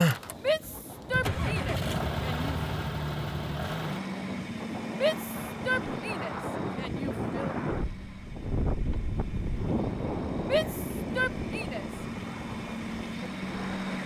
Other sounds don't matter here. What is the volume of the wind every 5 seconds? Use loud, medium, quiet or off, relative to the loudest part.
medium, loud, loud.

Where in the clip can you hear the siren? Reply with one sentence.
The siren can't be heard in this clip.